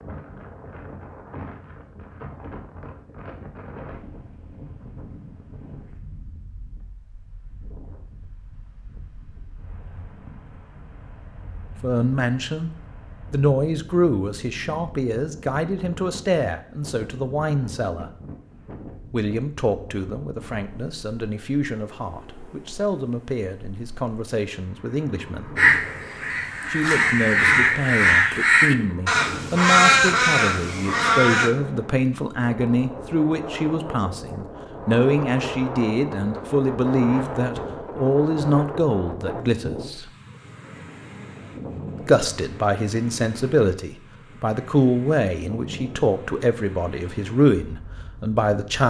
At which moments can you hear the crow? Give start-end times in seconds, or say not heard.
25.6-31.5.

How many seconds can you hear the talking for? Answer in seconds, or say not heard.
32 s.